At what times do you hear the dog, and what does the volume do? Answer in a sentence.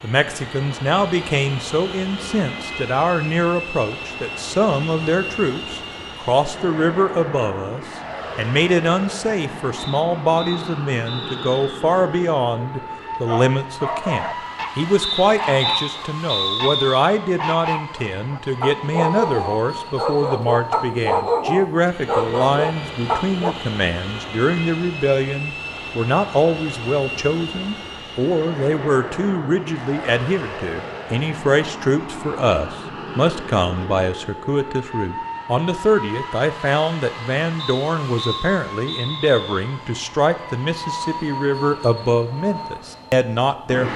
You can hear the dog from 13.2 to 23.6 s, getting louder.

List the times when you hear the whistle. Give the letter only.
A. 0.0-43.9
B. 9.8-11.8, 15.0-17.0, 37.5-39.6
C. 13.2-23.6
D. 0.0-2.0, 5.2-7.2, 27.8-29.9
B.